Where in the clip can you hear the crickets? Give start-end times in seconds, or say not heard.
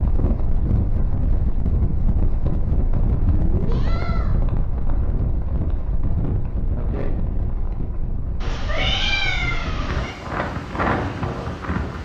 not heard.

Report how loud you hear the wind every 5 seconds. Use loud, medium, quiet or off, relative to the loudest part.
loud, medium, loud.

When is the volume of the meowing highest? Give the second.
9 s.